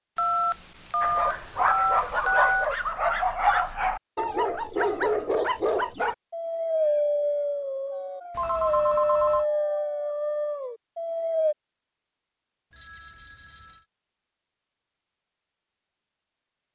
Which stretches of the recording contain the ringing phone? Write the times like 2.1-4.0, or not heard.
0.1-2.7, 8.3-9.4, 12.7-13.8.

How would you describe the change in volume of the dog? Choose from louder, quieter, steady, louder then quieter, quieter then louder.
steady.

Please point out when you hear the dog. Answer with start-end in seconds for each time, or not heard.
1.0-11.6.